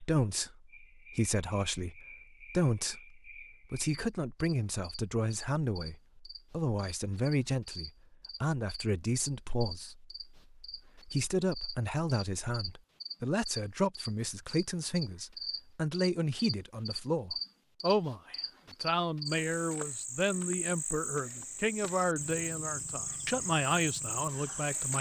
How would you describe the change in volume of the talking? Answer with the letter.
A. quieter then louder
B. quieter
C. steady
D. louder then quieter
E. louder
C.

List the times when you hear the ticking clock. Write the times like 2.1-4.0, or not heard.
not heard.